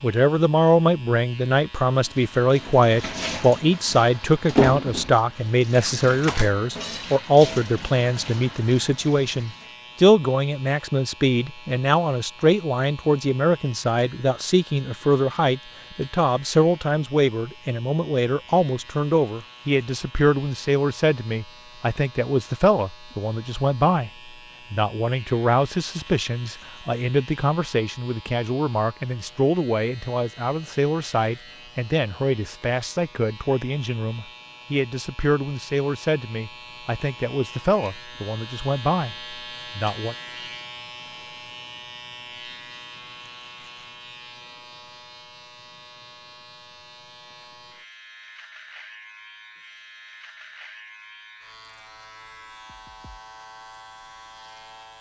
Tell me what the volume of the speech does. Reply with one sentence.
The volume of the speech goes down.